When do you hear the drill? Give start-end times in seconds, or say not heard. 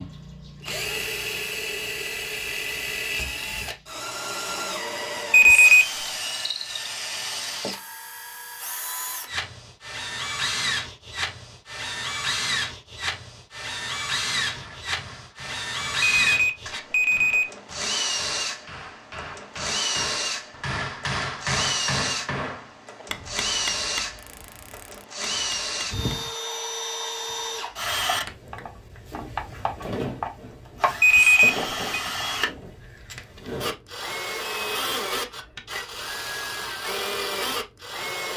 0.0-38.3.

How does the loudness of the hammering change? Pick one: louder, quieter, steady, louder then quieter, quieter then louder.
louder then quieter.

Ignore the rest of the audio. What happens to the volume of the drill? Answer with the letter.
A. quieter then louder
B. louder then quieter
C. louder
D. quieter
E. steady
E.